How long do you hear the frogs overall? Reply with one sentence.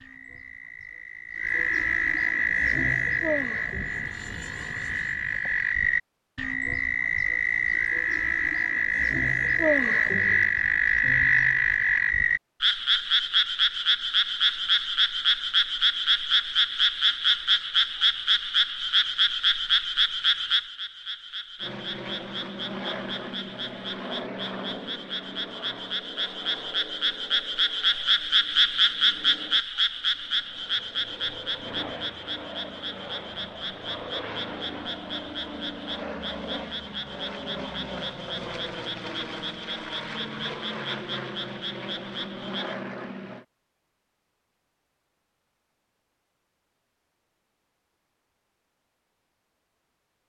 The frogs can be heard for 43 seconds in total.